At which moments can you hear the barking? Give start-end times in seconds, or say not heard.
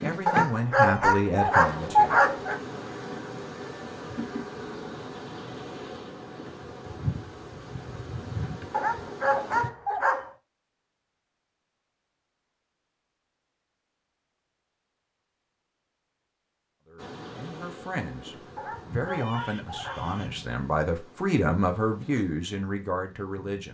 0.2-2.6, 8.7-10.3, 18.6-20.0.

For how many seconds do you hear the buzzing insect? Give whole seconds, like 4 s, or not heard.
16 s.